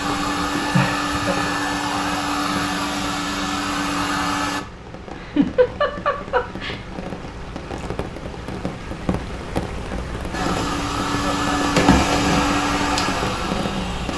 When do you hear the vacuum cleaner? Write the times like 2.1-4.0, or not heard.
0.0-4.6, 10.3-14.1.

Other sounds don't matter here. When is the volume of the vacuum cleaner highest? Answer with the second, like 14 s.
12 s.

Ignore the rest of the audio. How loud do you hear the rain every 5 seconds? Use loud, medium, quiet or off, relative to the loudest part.
medium, loud, loud.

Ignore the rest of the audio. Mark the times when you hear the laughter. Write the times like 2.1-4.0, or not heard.
0.7-1.4, 5.2-6.8, 11.1-11.6.